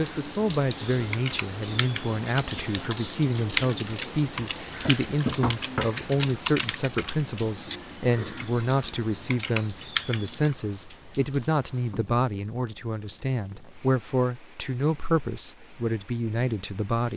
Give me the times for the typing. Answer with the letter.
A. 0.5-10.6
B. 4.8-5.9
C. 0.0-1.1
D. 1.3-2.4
A.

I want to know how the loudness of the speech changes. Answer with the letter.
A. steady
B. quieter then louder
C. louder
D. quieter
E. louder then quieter
A.